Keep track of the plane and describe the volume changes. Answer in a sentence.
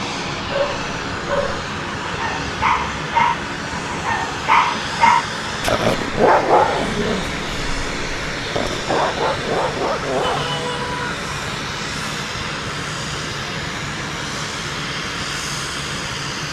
The volume of the plane stays about the same.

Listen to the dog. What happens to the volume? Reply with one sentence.
The volume of the dog goes up, then down.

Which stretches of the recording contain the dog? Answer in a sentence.
You can hear the dog from 0.4 to 10.5 s.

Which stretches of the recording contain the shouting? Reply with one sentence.
The shouting can be heard from 10.2 to 11.2 s.